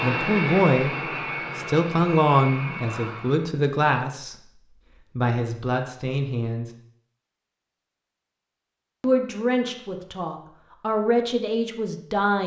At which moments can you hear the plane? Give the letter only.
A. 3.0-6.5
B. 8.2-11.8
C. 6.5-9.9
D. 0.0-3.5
D.